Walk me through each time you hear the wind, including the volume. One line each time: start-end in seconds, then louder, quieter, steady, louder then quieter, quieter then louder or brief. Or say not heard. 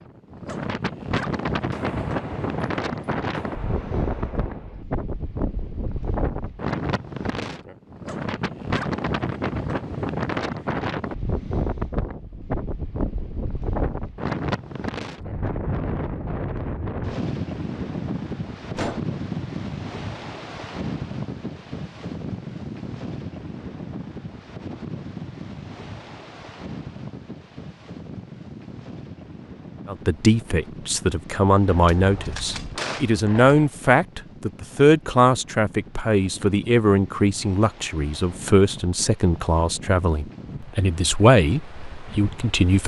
0.0-42.8 quieter.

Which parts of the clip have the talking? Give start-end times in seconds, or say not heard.
29.9-42.8.